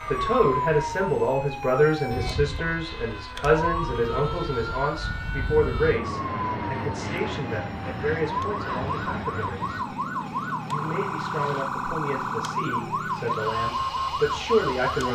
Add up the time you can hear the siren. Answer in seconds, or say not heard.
15 s.